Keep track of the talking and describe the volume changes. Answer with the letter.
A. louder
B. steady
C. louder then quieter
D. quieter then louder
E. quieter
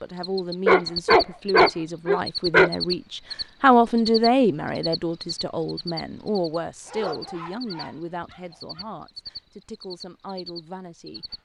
C.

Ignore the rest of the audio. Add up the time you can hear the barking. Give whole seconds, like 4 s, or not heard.
4 s.